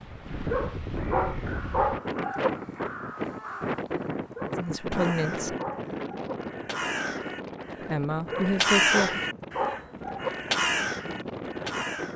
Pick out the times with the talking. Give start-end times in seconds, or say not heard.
4.5-5.5, 7.8-9.2.